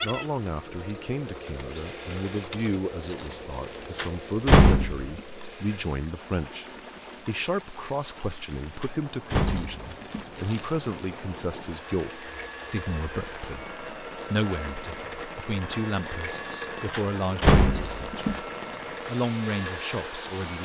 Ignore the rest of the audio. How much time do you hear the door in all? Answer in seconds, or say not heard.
4 s.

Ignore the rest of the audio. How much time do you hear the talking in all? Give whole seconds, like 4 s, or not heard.
20 s.